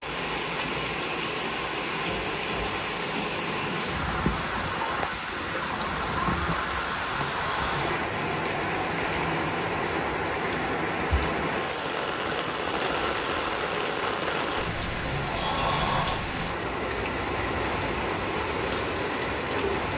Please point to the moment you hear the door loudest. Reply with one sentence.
The volume of the door peaks at 16 seconds.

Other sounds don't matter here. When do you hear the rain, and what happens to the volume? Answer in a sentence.
The rain can be heard from 0.0 to 19.9 s, at a steady volume.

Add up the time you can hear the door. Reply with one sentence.
You can hear the door for 2 seconds altogether.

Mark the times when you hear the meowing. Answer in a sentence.
The meowing can't be heard in this clip.